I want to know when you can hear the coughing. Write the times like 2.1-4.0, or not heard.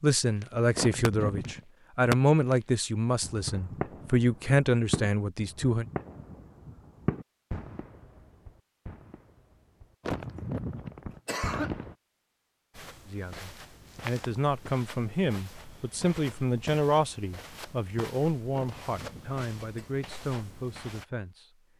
0.8-1.6, 10.0-11.8, 18.5-19.9.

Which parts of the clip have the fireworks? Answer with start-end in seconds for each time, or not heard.
0.4-1.5, 2.1-2.6, 3.2-11.9.